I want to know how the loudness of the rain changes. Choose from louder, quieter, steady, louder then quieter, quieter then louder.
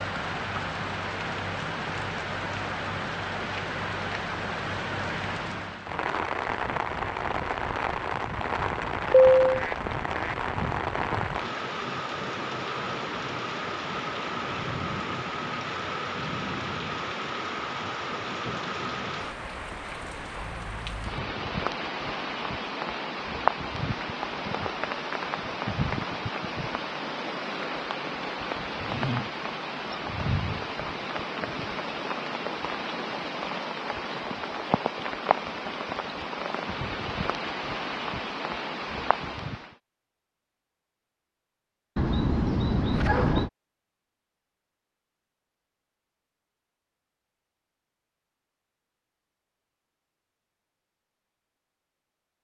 steady.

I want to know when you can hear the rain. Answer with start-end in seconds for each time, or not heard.
0.0-39.8.